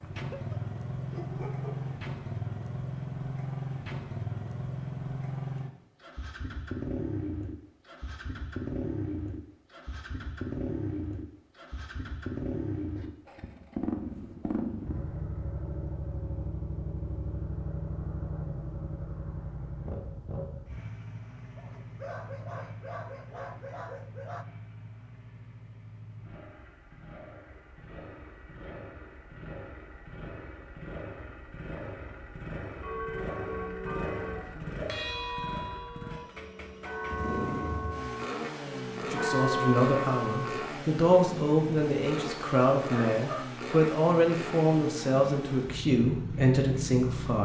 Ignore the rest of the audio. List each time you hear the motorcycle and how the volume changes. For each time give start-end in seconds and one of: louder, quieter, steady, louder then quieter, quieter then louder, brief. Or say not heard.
0.0-47.4 quieter then louder.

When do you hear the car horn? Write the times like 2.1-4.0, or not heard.
not heard.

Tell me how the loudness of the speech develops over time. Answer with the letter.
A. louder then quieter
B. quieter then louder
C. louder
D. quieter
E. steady
E.